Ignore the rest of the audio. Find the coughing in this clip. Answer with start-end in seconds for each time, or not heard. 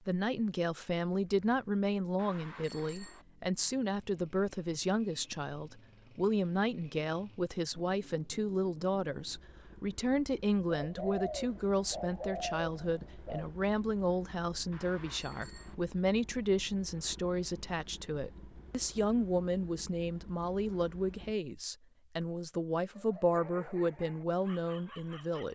not heard.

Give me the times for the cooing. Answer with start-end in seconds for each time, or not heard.
10.7-13.5.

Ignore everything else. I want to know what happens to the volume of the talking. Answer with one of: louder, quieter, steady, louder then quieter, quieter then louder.
steady.